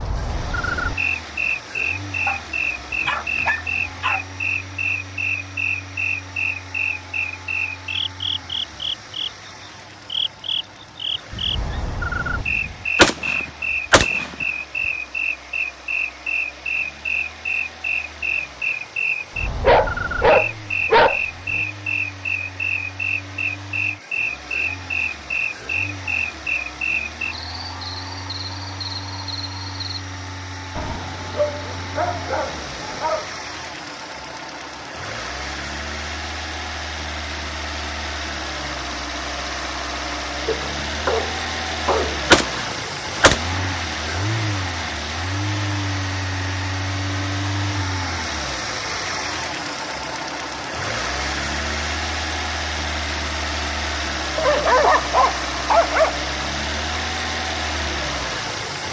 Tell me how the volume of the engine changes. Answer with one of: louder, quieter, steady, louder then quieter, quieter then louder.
louder.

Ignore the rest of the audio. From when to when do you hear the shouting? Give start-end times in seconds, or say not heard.
not heard.